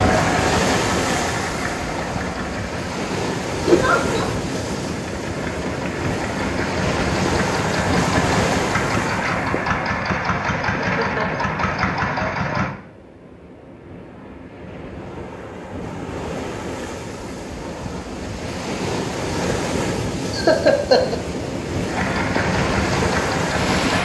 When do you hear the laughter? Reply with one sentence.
You can hear the laughter from 3.6 to 4.3 s, from 10.7 to 11.4 s and from 20.3 to 21.2 s.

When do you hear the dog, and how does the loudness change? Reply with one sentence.
The dog can't be heard in this clip.